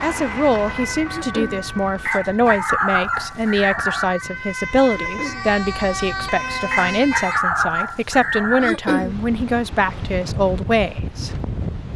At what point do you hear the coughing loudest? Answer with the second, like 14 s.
9 s.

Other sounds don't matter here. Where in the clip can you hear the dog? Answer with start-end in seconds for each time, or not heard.
2.0-4.0, 6.7-8.7.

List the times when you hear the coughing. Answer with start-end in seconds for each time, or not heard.
1.1-1.6, 4.9-5.5, 8.6-9.2.